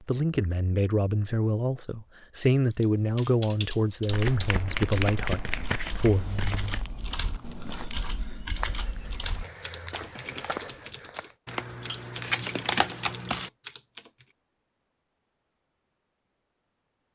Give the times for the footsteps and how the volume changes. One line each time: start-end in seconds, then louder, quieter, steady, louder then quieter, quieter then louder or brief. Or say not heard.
6.2-11.3 louder.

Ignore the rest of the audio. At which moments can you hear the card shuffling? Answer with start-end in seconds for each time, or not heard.
4.0-6.8, 11.4-13.5.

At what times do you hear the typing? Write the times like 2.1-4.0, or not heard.
2.7-14.3.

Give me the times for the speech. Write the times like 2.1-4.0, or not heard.
0.1-6.2.